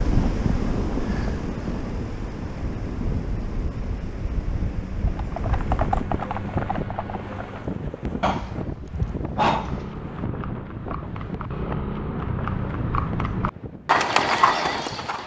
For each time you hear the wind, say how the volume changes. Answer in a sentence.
You can hear the wind from 0.0 to 15.2 s, getting quieter.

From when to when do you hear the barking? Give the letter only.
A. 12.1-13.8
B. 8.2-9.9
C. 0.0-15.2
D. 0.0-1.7
B.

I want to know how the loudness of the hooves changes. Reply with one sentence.
The loudness of the hooves goes down, then up.